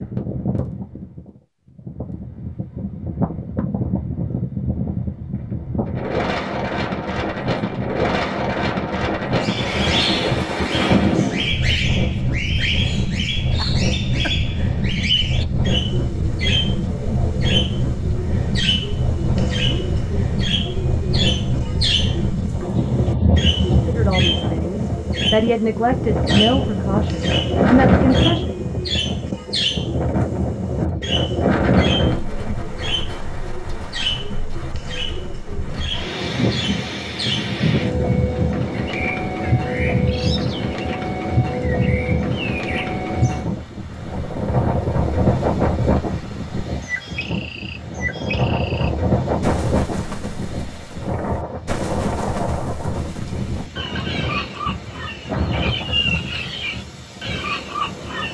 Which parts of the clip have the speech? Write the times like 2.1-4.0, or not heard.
23.9-28.5.